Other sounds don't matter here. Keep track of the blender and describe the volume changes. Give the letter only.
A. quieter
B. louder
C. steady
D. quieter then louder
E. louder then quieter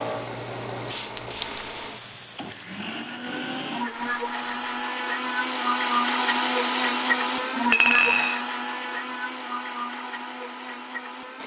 E.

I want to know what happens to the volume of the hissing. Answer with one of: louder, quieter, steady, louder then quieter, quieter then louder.
quieter.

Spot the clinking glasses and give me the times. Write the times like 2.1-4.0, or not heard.
1.1-1.6, 7.7-8.4.